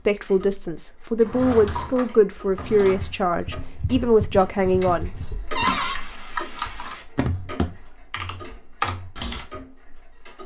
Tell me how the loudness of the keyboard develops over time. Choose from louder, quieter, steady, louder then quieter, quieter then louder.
louder.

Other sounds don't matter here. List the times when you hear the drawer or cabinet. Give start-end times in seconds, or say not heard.
1.2-3.0, 5.5-6.0.